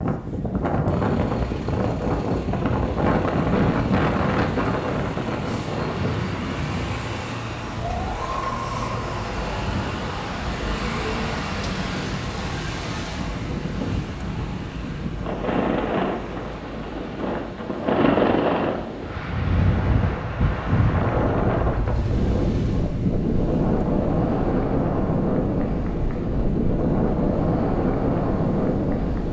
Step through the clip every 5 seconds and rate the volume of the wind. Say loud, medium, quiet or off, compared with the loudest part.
loud, medium, medium, loud, loud, loud.